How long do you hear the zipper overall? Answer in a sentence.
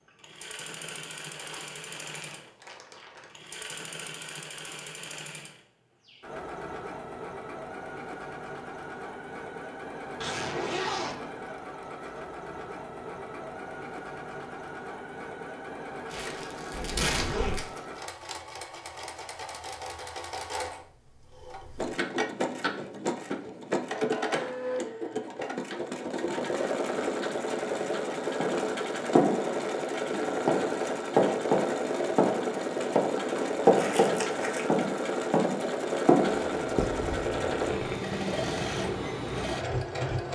You can hear the zipper for 4 seconds altogether.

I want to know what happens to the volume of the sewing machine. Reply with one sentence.
The volume of the sewing machine goes up.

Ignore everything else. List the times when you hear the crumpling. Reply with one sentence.
The crumpling can be heard from 1.4 to 3.3 s, from 16.1 to 17.8 s and from 33.8 to 34.7 s.